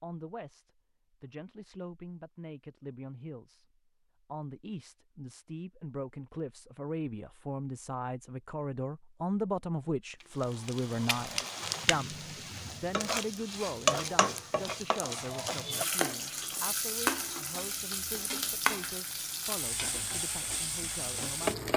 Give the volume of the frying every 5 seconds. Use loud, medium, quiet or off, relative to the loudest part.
off, off, loud, loud, loud.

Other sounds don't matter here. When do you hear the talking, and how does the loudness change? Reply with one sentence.
The talking can be heard from 0.0 to 21.6 s, getting louder then quieter.